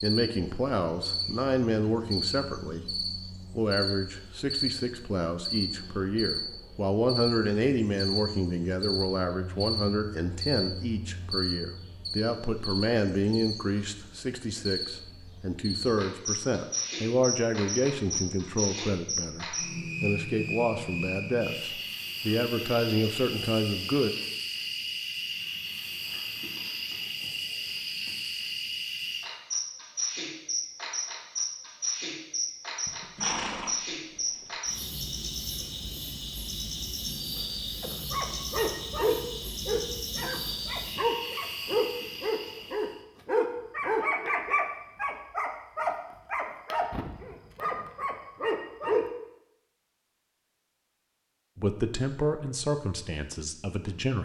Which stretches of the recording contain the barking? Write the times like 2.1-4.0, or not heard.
37.8-49.0.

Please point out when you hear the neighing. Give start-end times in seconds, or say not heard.
32.9-34.5.